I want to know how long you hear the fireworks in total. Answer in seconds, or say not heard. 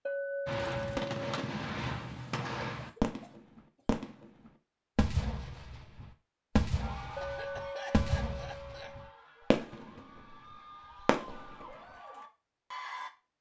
10 s.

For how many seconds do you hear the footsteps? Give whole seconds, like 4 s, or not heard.
not heard.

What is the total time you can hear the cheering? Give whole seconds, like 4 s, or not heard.
6 s.